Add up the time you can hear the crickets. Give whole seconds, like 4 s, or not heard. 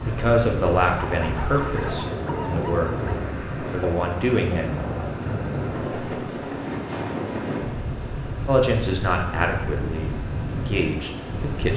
12 s.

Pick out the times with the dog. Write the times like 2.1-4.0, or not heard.
0.8-3.3.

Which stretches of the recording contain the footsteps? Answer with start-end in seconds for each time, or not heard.
not heard.